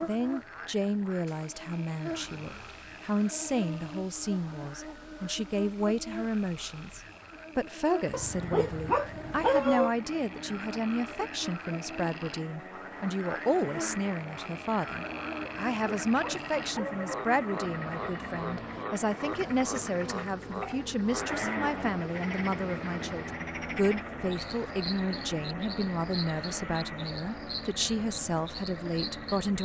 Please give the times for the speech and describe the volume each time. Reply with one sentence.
You can hear the speech from 0.0 to 29.6 s, at a steady volume.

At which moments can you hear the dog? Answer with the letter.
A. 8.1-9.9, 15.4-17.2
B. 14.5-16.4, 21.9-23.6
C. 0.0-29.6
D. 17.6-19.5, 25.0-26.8
A.